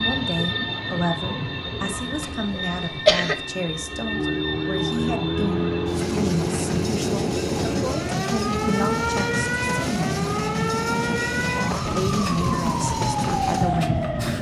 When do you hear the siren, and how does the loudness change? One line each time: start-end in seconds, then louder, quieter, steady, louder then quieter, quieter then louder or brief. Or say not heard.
0.0-14.3 louder.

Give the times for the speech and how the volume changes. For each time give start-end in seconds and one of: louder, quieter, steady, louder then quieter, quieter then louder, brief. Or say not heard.
0.0-10.2 steady
11.9-14.1 brief.